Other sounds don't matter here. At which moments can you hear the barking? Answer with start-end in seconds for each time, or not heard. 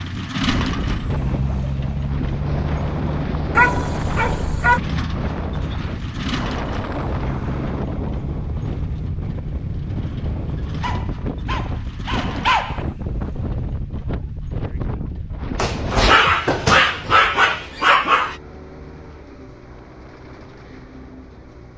3.5-4.8, 10.8-12.8, 15.6-18.4.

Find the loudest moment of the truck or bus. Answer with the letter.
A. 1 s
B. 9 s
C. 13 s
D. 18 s
A.